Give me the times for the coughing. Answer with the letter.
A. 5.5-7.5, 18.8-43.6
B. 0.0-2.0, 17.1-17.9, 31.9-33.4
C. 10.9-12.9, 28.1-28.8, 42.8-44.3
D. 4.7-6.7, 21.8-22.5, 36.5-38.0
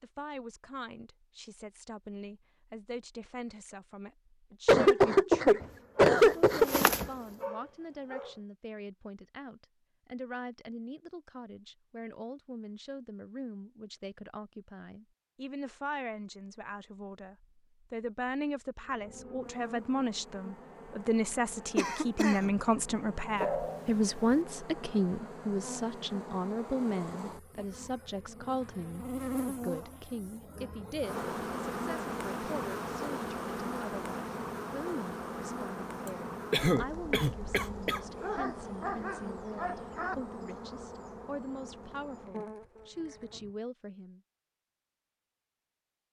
D.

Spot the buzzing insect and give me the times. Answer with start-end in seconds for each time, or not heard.
5.5-7.5, 18.8-43.6.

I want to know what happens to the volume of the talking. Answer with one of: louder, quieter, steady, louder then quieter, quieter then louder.
louder then quieter.